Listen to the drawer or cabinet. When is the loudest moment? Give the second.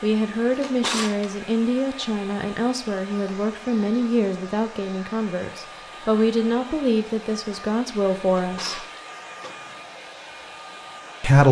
1 s.